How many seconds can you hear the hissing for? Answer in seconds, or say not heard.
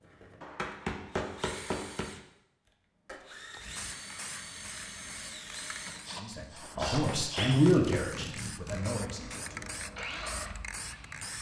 8 s.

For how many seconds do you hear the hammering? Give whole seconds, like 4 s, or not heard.
3 s.